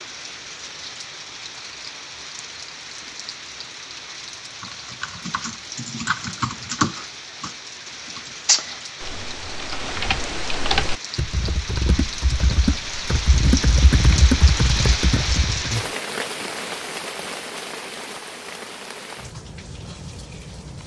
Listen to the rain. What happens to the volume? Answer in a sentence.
The volume of the rain goes up, then down.